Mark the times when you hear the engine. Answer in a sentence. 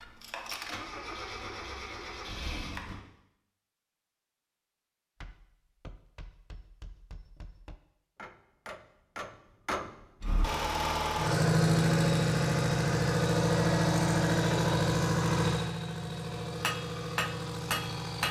The engine can be heard from 0.0 to 3.0 s and from 10.2 to 18.2 s.